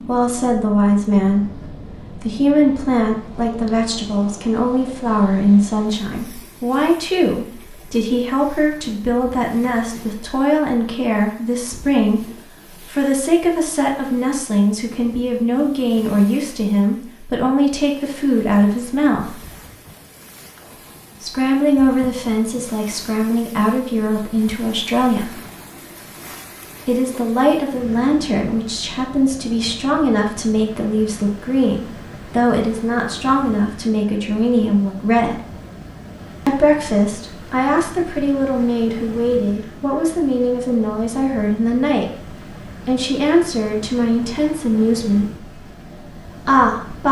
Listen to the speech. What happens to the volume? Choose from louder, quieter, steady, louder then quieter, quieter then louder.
steady.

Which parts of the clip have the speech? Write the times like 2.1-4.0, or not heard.
0.0-19.4, 21.2-25.4, 26.9-35.4, 36.5-47.0.